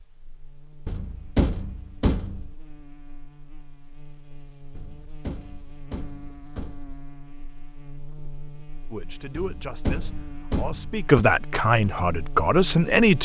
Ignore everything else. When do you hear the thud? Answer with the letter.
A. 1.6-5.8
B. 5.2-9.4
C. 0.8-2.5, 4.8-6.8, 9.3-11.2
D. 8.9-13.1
C.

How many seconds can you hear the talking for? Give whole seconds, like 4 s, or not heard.
4 s.